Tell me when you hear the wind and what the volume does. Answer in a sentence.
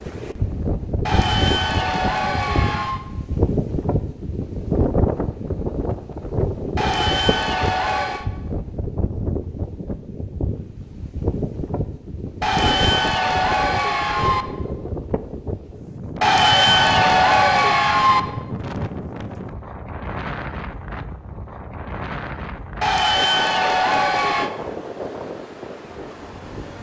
The wind can be heard from 0.0 to 26.7 s, getting quieter.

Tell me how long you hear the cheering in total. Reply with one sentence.
You can hear the cheering for 9 seconds altogether.